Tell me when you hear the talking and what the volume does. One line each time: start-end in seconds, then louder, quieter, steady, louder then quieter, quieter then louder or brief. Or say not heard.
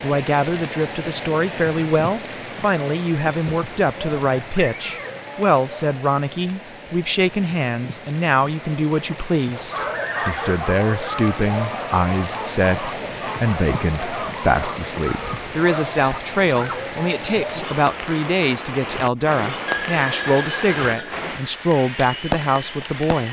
0.0-23.2 steady.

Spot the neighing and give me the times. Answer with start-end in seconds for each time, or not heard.
3.4-5.2, 9.8-10.6, 19.6-21.2.